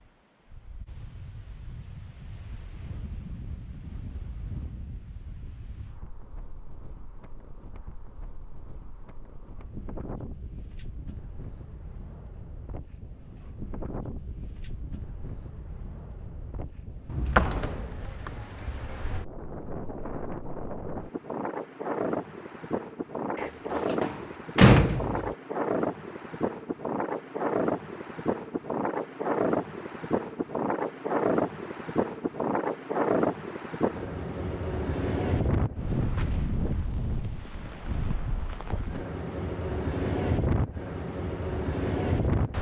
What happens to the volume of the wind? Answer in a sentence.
The volume of the wind goes up.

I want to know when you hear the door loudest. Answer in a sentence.
The loudest moment of the door is at 25 seconds.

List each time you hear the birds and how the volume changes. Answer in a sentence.
You can't hear the birds here.